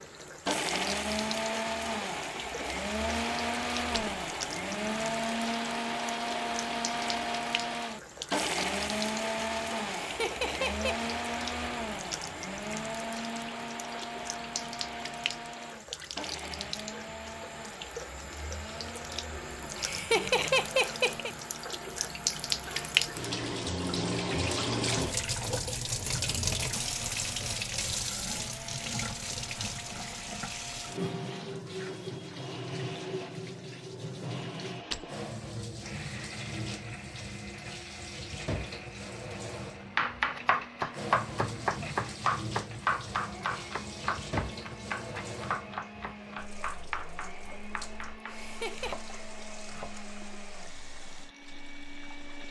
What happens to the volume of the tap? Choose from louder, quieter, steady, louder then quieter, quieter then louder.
louder then quieter.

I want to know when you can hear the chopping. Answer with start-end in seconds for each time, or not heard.
40.0-50.0.